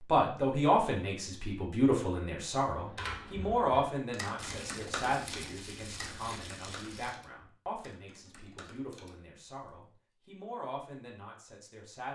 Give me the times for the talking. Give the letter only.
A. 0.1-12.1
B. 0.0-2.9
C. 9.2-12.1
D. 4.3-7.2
A.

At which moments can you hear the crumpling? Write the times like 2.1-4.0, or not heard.
4.3-7.2.